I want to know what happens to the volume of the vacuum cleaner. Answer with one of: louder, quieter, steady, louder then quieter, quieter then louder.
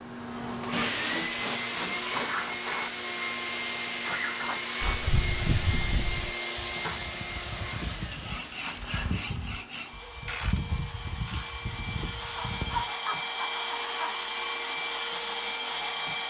quieter then louder.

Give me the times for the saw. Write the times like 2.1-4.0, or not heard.
0.7-2.3, 4.8-6.3, 8.1-9.9, 12.2-14.2.